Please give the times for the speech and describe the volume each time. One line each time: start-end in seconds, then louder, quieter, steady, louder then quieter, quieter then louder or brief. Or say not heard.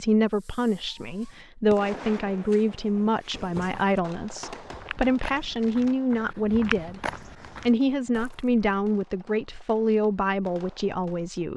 0.0-11.5 steady.